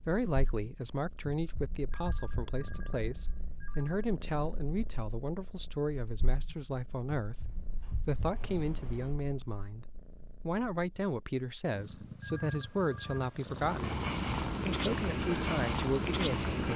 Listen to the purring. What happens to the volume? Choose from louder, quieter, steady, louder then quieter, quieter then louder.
louder.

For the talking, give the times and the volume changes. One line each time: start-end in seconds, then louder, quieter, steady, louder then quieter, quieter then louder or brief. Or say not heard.
0.1-14.0 steady
14.7-16.7 brief.